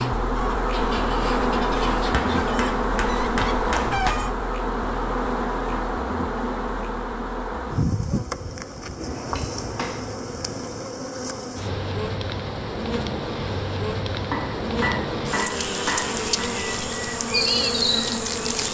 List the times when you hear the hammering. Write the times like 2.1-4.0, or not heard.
2.1-4.2, 9.0-10.0, 14.3-16.2.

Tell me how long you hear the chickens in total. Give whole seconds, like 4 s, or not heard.
4 s.